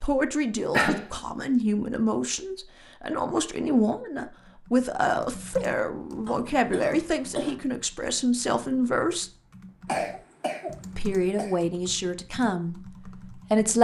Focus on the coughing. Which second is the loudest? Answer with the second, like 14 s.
1 s.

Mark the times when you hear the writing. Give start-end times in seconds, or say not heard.
not heard.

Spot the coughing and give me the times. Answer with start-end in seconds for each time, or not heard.
0.7-1.1, 6.2-7.5, 9.8-11.6.